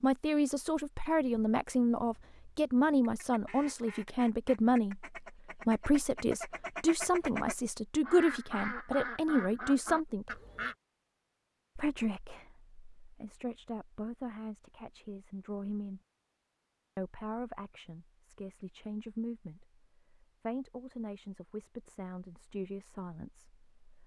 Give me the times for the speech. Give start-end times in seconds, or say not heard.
0.0-10.4, 11.8-16.0, 16.9-24.0.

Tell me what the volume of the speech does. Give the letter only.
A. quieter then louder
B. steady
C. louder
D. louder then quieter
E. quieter
E.